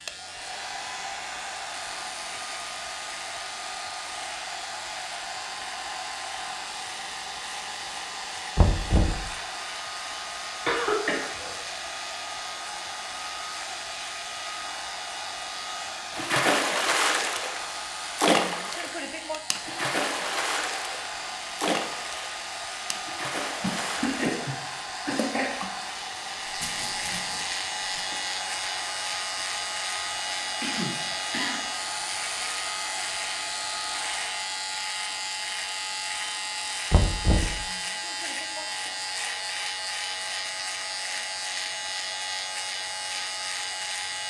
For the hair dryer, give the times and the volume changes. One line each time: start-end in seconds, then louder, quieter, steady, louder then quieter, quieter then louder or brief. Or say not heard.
0.0-44.2 quieter.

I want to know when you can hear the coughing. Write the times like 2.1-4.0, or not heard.
10.7-11.6, 23.6-25.5, 30.6-31.6.